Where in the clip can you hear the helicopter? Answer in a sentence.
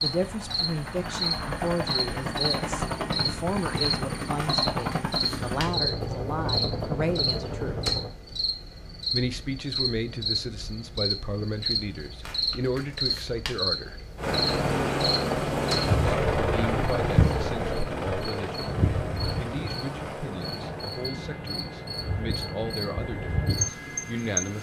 The helicopter can be heard from 0.0 to 8.1 s and from 14.2 to 24.5 s.